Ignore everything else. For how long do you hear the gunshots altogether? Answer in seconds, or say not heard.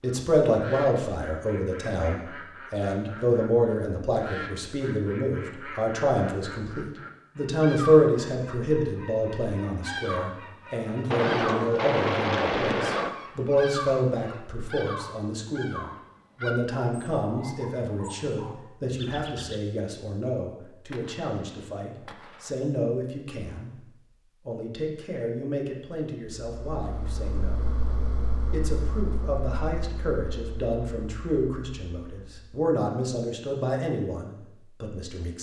4 s.